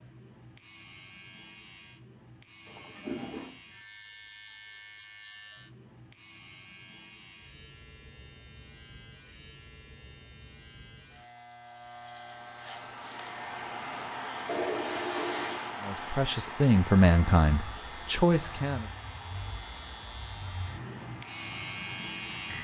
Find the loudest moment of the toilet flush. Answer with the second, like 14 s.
15 s.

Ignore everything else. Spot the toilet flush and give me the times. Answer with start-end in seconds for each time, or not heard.
2.6-3.5, 14.4-15.7.